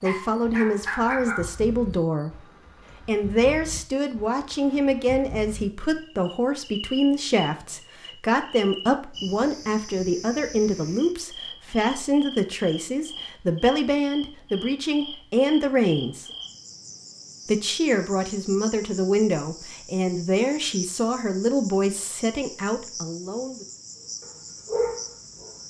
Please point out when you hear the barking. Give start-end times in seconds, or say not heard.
0.0-1.6, 24.2-25.6.